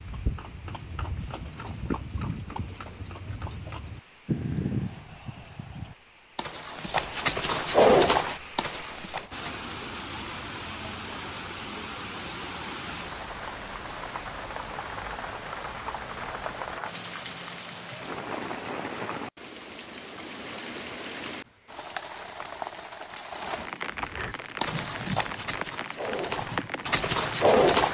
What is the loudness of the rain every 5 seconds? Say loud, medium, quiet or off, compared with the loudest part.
quiet, medium, loud, loud, loud, loud.